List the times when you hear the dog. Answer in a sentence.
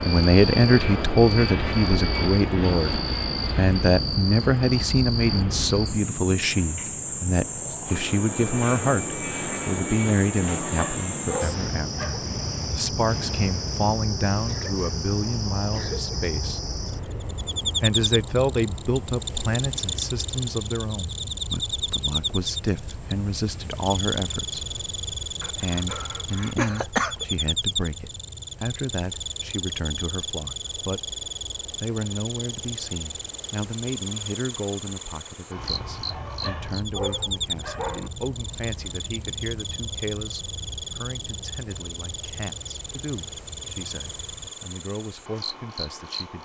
You can hear the dog from 10.4 to 12.2 s and from 36.1 to 38.1 s.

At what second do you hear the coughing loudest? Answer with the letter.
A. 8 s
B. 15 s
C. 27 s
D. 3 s
C.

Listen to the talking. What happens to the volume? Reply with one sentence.
The loudness of the talking goes down.